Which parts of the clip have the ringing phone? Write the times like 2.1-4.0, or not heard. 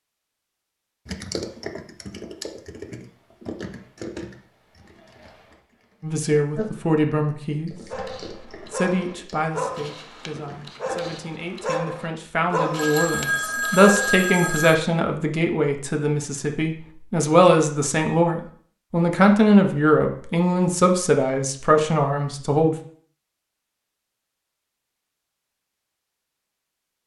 12.8-14.8.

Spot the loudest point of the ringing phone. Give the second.
14 s.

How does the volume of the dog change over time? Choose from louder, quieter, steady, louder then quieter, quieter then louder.
louder then quieter.